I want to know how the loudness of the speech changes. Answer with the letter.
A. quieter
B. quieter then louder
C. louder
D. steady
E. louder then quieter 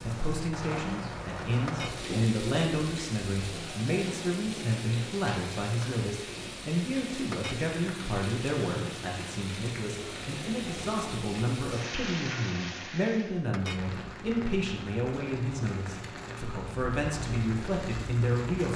D.